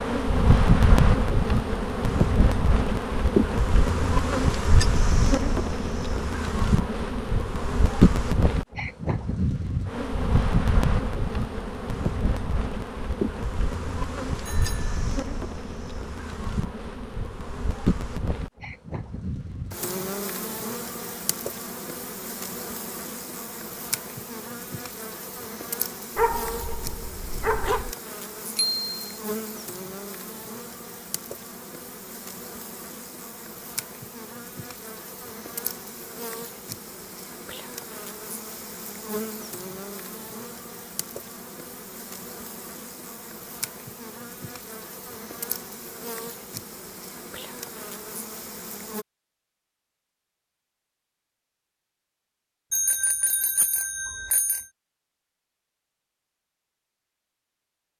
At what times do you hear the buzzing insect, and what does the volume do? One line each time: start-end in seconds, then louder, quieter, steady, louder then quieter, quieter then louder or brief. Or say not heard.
0.0-49.0 quieter.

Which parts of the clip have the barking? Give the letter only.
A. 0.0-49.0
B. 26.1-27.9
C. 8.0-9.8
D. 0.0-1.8
B.